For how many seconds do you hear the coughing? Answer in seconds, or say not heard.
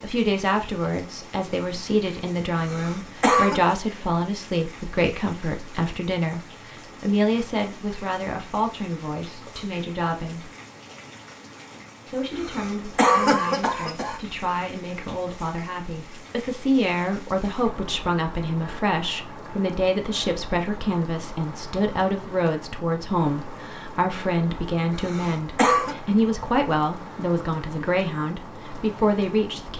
4 s.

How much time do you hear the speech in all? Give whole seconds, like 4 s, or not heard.
28 s.